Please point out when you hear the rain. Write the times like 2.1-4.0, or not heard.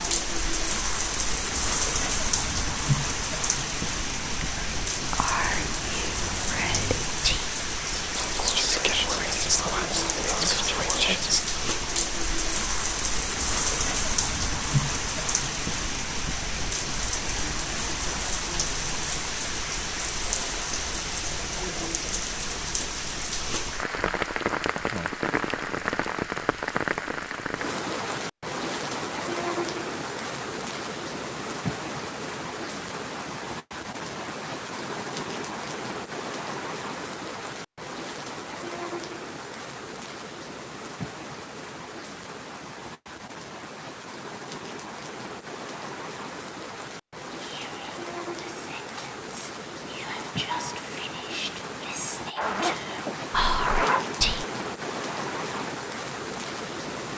0.0-57.1.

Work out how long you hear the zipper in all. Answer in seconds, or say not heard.
2 s.